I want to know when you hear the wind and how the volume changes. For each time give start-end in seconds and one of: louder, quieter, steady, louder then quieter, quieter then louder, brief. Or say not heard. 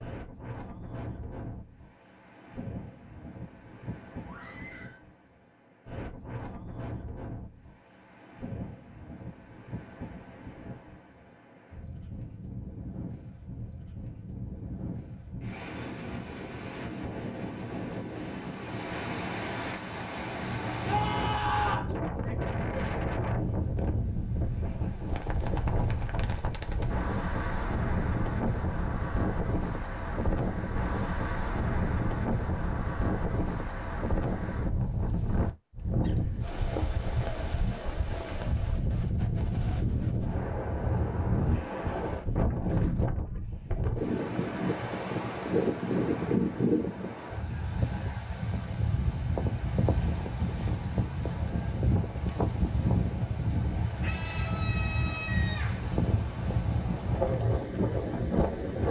0.0-58.8 louder.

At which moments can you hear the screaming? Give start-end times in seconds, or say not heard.
4.2-5.0, 20.9-21.9, 54.0-55.8.